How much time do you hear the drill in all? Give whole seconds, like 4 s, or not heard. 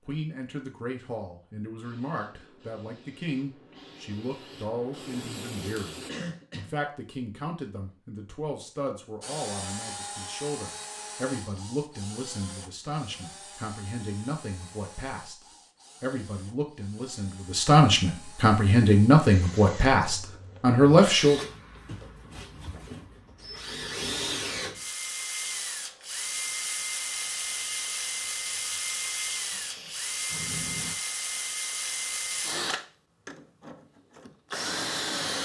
26 s.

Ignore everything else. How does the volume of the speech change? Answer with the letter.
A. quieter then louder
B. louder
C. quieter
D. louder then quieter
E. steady
B.